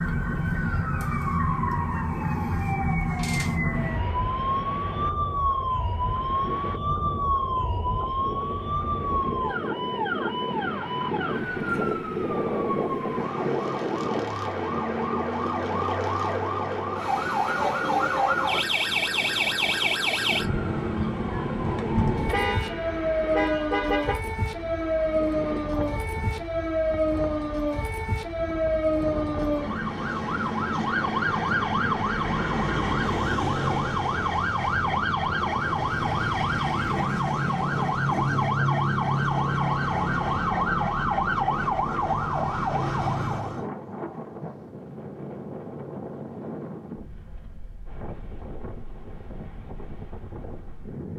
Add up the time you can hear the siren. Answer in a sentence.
You can hear the siren for 44 seconds altogether.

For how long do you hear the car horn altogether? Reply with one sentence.
The car horn can be heard for 2 seconds in total.